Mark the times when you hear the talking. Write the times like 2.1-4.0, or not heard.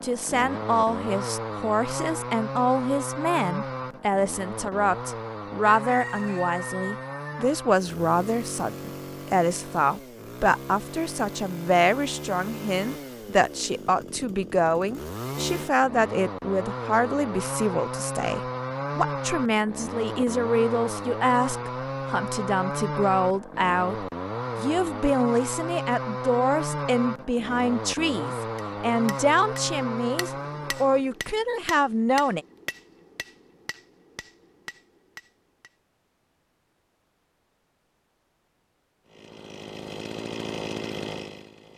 0.0-32.5.